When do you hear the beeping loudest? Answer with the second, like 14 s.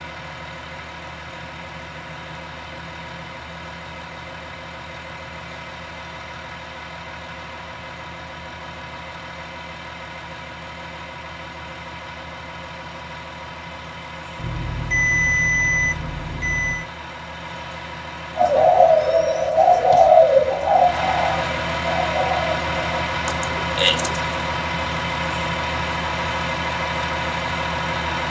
15 s.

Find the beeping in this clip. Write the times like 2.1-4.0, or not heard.
14.3-16.9.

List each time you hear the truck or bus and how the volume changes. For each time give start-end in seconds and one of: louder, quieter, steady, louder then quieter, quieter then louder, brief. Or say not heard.
0.0-28.2 louder.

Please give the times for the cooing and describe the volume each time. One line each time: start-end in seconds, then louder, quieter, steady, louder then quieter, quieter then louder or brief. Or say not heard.
18.4-24.3 quieter.